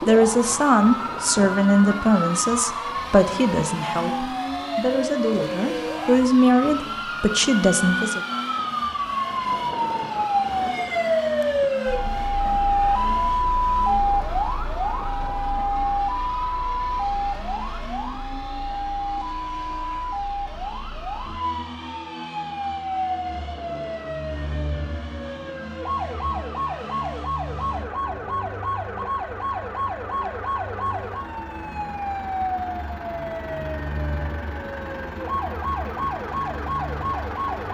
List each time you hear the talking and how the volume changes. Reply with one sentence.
You can hear the talking from 0.1 to 8.2 s, getting quieter then louder.